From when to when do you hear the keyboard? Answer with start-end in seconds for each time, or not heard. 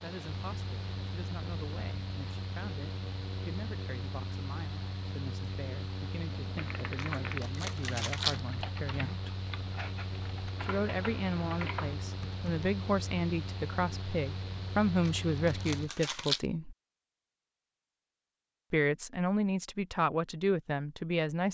6.3-12.8.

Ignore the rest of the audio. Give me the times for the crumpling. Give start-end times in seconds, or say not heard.
7.0-8.4, 15.1-16.4.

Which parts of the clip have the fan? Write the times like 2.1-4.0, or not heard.
0.0-15.9.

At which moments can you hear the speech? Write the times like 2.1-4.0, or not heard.
0.0-9.3, 10.6-16.8, 18.7-21.5.